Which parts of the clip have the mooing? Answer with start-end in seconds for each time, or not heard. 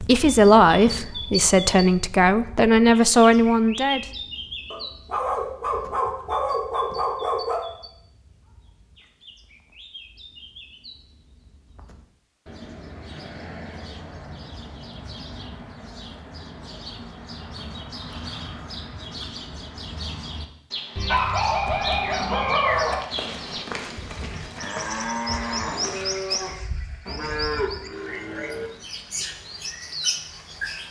23.1-28.7.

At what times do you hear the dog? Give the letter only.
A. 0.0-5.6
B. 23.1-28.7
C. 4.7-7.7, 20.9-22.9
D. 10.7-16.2
C.